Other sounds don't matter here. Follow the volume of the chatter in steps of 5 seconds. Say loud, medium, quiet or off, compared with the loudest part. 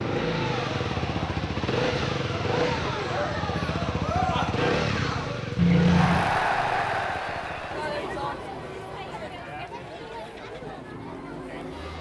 loud, loud, medium.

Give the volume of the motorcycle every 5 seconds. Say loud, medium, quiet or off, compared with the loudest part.
loud, medium, quiet.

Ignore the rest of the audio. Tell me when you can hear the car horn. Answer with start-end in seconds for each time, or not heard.
5.5-6.3.